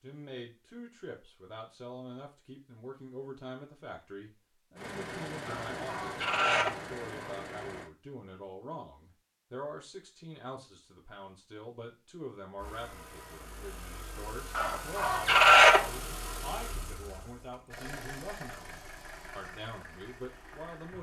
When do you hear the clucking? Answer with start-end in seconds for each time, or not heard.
5.5-7.3, 14.6-15.9.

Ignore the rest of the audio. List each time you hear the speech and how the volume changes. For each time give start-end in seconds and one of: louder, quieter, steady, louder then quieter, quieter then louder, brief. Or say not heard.
0.0-20.9 steady.